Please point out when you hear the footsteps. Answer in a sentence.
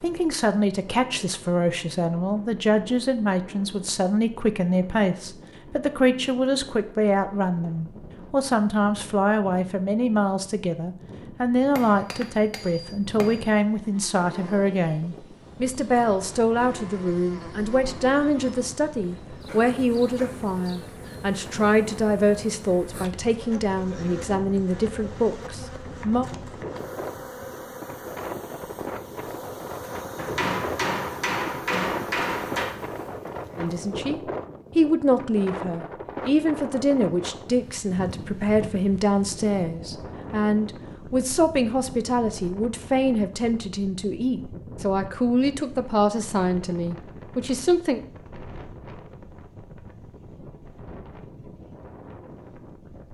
The footsteps can't be heard in this clip.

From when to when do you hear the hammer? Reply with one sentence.
The hammer can be heard from 11.8 to 13.6 s and from 30.1 to 32.8 s.